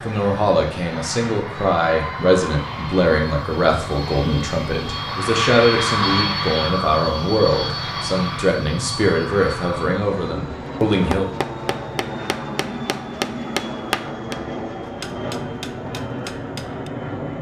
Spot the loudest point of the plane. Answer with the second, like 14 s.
6 s.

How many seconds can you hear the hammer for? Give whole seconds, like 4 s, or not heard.
6 s.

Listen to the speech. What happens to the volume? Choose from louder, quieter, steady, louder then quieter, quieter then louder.
steady.